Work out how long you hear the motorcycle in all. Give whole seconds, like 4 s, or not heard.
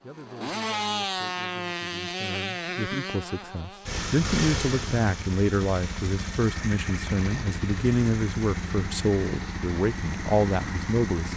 11 s.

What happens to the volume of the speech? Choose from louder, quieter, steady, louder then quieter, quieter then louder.
louder.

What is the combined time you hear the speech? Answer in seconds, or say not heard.
11 s.